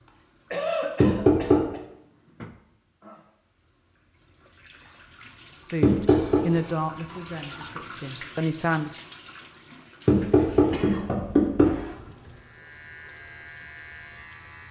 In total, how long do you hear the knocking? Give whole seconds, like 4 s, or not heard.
3 s.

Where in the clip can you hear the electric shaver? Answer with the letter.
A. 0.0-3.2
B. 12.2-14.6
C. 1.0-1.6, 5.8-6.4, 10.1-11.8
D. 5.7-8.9
B.